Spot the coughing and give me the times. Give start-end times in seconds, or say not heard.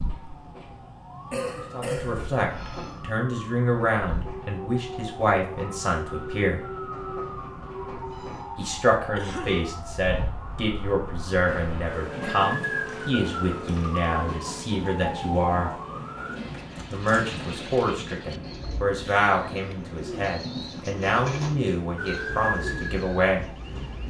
1.3-2.2, 9.2-9.7, 19.0-19.8.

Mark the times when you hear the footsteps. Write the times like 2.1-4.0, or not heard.
not heard.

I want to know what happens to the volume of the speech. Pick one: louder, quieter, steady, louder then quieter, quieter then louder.
steady.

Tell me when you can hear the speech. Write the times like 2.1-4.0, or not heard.
1.7-6.6, 8.6-15.7, 16.9-23.4.